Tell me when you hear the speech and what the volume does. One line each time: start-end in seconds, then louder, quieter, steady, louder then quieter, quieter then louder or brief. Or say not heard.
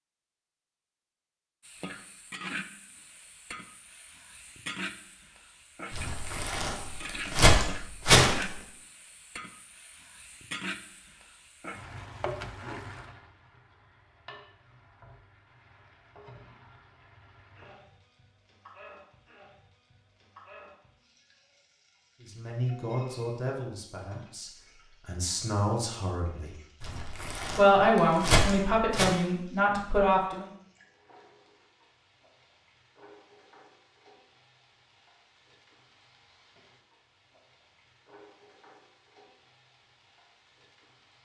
22.2-26.6 quieter then louder
27.6-30.4 brief.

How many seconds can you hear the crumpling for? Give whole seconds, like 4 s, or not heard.
5 s.